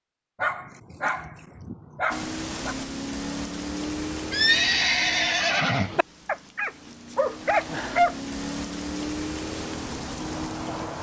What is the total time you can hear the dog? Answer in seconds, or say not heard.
4 s.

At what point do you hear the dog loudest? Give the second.
8 s.